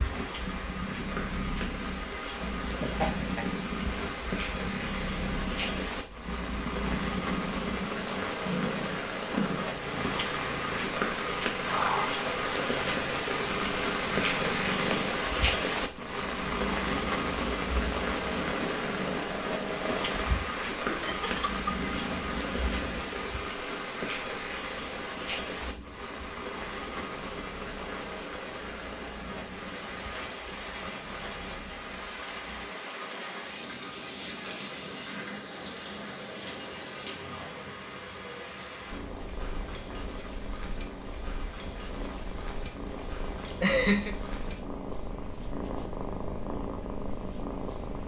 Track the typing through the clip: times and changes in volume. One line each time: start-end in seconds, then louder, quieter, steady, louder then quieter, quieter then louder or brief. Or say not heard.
not heard.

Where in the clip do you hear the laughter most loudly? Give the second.
44 s.